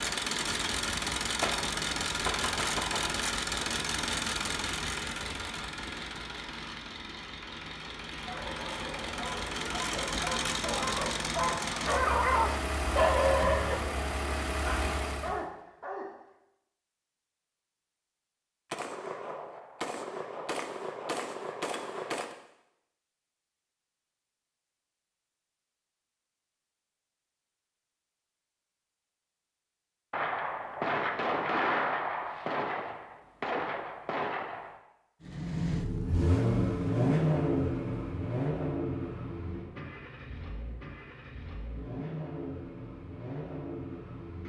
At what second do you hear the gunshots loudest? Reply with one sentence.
The volume of the gunshots peaks at 32 seconds.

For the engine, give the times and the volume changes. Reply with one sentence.
The engine can be heard from 0.0 to 15.4 s, getting quieter then louder; and from 35.2 to 44.4 s, getting quieter.